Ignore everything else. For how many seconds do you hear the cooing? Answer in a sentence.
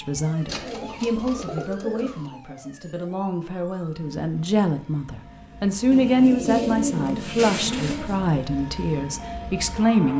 The cooing can be heard for 4 seconds in total.